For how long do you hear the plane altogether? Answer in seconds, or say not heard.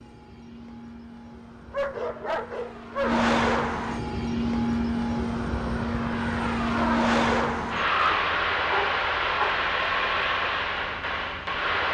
12 s.